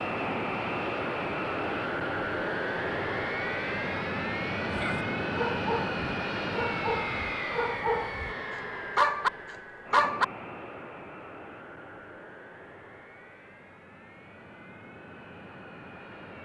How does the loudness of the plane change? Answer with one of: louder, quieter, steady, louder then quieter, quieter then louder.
quieter.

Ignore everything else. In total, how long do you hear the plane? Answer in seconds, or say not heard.
16 s.